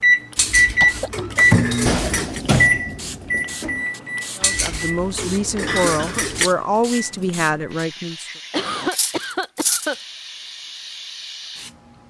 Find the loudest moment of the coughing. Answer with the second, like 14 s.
9 s.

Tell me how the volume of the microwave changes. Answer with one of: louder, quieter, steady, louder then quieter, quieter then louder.
quieter.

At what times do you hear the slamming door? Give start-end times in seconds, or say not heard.
not heard.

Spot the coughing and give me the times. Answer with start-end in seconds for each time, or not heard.
0.8-1.4, 5.7-6.3, 8.5-9.9.